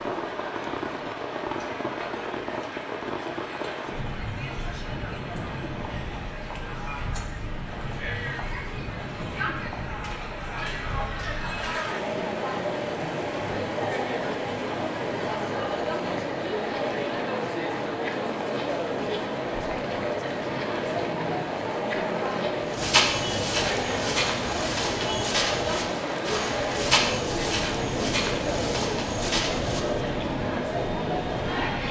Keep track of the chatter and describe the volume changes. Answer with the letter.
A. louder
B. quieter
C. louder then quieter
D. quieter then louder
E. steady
A.